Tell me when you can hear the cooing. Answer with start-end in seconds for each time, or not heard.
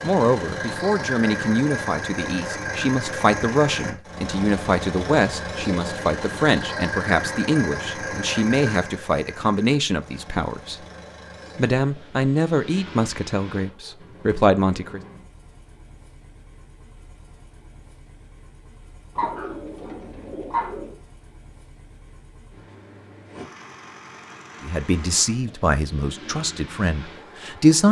19.1-20.9.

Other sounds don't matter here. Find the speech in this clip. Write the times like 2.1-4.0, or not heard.
0.0-10.8, 11.6-15.0, 24.6-27.8.